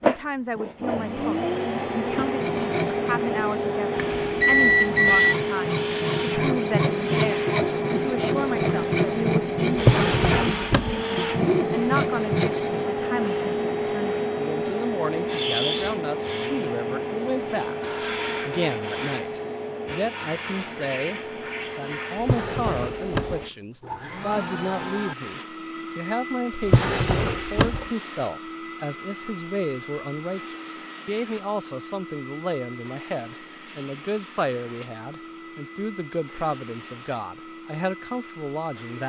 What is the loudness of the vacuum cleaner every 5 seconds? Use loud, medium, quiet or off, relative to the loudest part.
loud, loud, loud, loud, medium, medium, quiet, quiet.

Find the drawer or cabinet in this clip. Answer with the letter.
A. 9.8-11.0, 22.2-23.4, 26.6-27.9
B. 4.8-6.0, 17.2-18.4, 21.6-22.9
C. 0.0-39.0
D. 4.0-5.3
A.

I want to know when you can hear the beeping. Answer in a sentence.
You can hear the beeping from 4.0 to 5.3 s.